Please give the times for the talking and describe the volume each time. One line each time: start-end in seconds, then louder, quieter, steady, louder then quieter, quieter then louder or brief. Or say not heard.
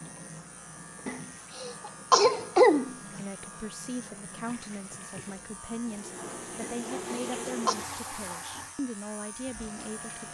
3.1-10.2 steady.